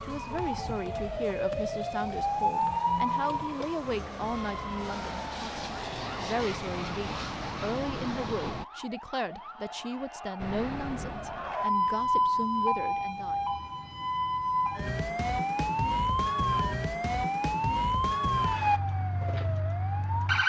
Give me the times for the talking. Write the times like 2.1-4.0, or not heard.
0.1-13.4.